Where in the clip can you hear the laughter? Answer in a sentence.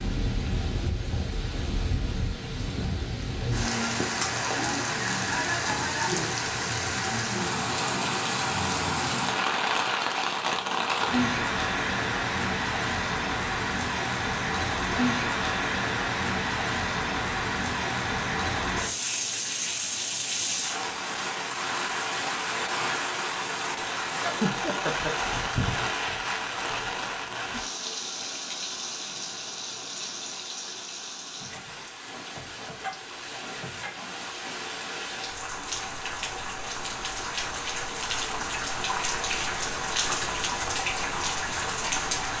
The laughter can be heard from 24.2 to 25.1 s.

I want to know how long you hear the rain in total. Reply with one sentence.
The rain can be heard for 42 seconds in total.